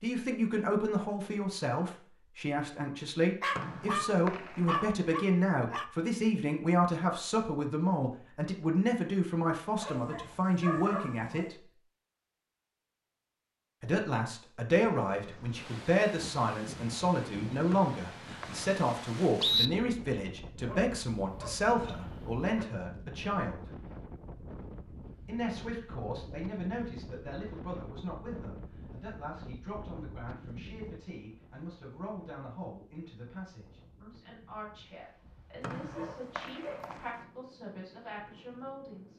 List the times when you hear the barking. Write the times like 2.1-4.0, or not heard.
3.4-5.9, 9.8-11.5, 20.6-22.6, 35.8-37.0.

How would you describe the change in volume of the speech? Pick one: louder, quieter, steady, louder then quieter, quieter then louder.
quieter.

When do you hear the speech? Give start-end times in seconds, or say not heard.
0.0-11.7, 13.8-23.8, 25.2-39.1.